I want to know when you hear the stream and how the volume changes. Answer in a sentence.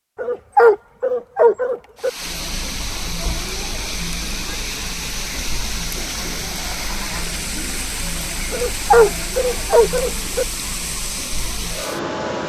You can hear the stream from 1.9 to 12.4 s, at a steady volume.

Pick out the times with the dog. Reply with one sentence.
You can hear the dog from 0.1 to 2.1 s and from 8.5 to 10.4 s.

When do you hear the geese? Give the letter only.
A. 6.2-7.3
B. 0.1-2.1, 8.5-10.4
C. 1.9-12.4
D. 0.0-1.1
A.